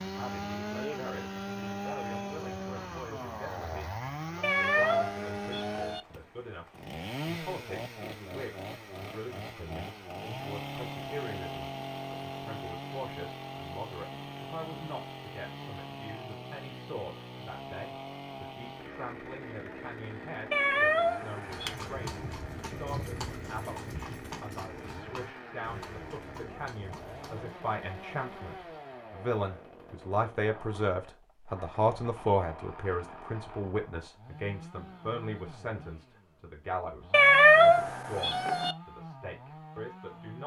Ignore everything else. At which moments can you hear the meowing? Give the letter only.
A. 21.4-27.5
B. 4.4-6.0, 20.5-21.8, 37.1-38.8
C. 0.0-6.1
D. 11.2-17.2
B.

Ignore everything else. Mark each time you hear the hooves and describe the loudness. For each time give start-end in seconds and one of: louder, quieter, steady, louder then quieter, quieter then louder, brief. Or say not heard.
21.4-27.5 quieter.